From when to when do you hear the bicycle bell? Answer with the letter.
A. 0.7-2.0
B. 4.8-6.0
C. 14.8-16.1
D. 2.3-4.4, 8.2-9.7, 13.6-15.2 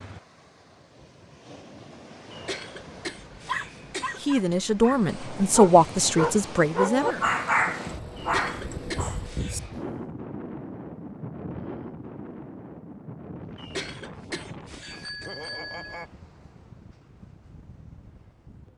C.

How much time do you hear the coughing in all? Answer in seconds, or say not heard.
5 s.